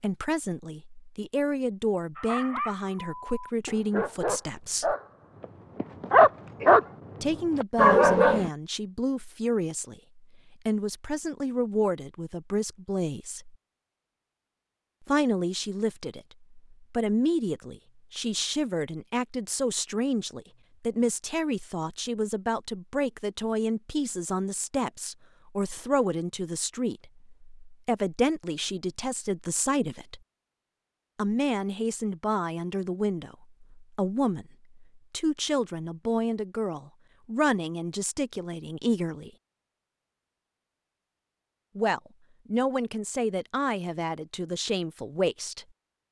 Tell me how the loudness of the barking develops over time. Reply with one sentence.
The volume of the barking goes up.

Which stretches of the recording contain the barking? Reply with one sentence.
The barking can be heard from 2.1 to 8.5 s.